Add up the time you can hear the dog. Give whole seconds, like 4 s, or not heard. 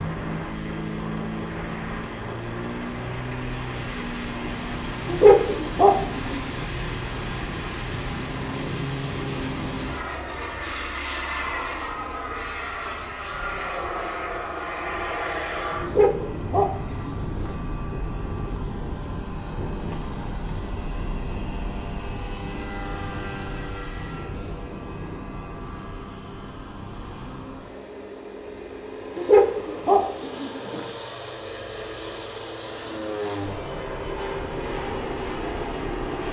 5 s.